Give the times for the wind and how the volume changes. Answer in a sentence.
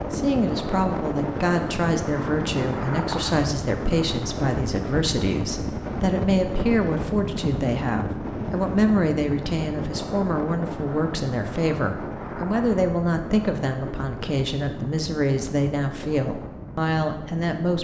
The wind can be heard from 0.0 to 17.7 s, getting quieter.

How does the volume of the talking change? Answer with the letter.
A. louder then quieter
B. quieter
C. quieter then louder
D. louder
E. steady
E.